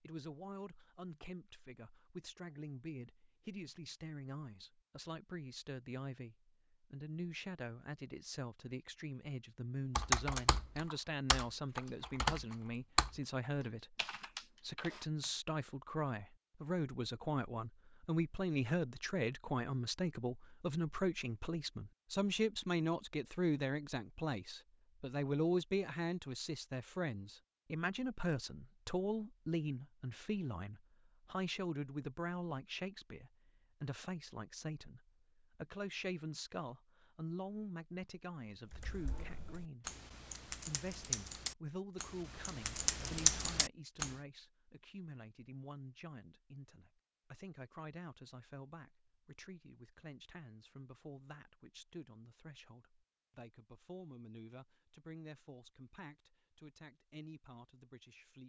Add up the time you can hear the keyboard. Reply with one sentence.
You can hear the keyboard for 11 seconds altogether.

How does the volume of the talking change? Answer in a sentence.
The loudness of the talking goes up, then down.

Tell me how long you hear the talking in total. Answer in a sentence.
The talking can be heard for 58 seconds in total.